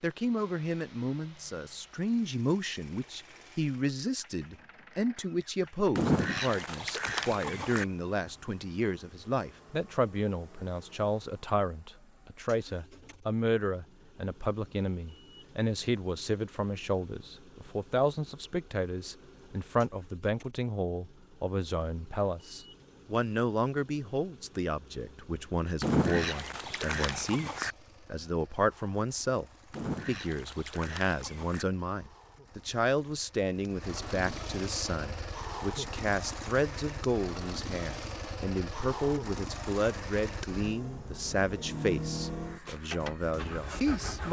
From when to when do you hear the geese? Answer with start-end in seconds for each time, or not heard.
6.0-7.8, 25.8-27.8, 29.7-31.6.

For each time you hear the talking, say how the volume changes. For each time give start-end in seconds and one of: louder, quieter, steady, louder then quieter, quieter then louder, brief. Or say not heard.
0.0-44.2 steady.